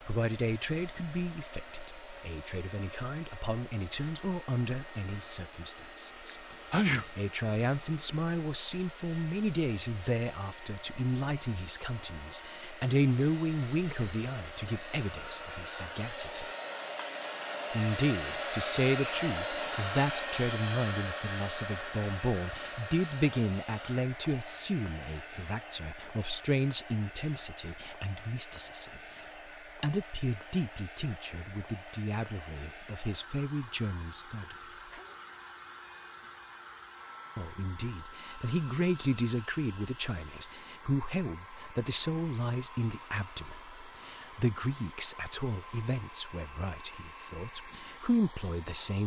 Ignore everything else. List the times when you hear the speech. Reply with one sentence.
You can hear the speech from 0.1 to 16.4 s, from 17.7 to 29.0 s, from 29.8 to 34.5 s and from 37.4 to 49.0 s.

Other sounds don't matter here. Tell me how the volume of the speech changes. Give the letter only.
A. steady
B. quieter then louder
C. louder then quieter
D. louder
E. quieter
A.